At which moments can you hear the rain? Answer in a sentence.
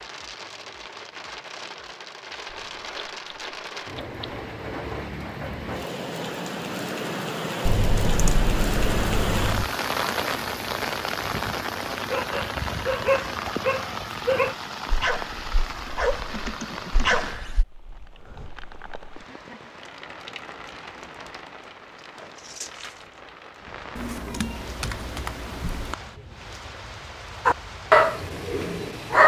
You can hear the rain from 0.0 to 29.2 s.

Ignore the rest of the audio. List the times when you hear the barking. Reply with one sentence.
You can hear the barking from 11.9 to 17.6 s and from 27.4 to 29.2 s.